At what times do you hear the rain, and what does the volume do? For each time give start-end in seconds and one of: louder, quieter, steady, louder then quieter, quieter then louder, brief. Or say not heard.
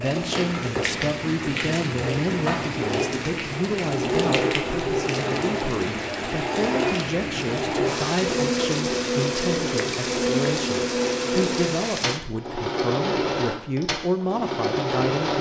0.0-12.2 steady.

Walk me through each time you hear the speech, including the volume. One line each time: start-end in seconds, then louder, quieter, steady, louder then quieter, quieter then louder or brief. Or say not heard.
0.0-15.3 steady.